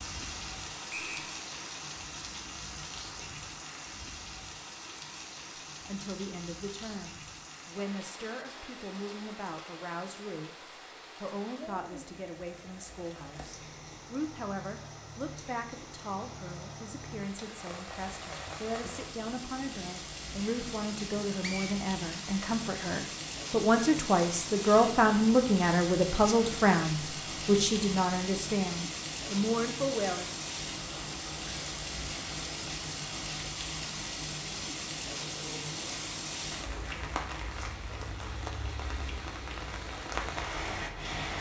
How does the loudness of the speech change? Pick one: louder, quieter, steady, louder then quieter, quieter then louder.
louder.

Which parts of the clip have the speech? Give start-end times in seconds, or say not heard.
5.8-30.2.